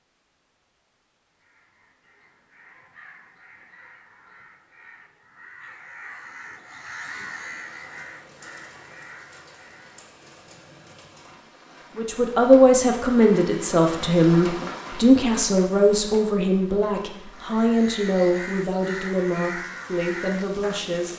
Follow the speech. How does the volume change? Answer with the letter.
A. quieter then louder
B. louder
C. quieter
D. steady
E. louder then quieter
C.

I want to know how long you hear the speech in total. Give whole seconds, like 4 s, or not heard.
9 s.